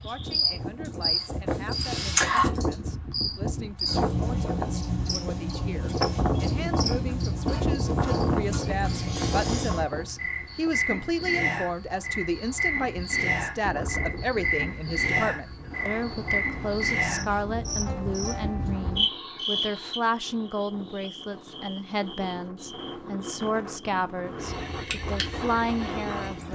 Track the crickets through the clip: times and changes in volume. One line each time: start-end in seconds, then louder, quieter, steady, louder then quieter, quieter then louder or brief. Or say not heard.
0.1-26.4 quieter.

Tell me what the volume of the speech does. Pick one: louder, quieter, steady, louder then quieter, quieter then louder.
louder.